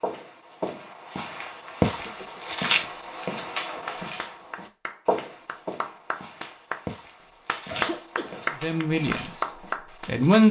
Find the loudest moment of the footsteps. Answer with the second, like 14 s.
2 s.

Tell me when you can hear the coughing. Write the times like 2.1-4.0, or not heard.
1.9-2.5, 7.7-8.5.